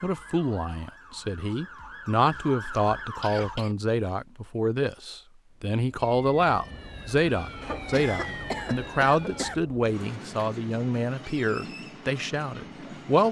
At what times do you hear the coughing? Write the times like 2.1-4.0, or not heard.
3.0-3.8, 7.6-9.6.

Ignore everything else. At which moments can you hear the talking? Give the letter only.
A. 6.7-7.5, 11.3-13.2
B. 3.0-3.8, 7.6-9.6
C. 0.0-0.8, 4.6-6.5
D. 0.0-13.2
D.